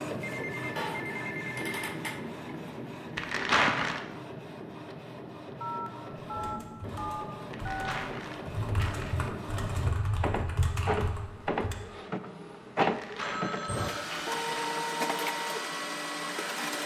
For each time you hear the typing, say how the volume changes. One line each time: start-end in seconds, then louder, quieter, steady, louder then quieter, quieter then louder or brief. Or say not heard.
6.3-11.8 louder.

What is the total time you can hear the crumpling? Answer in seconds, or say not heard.
5 s.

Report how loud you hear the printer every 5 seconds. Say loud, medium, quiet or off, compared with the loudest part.
medium, medium, loud, loud.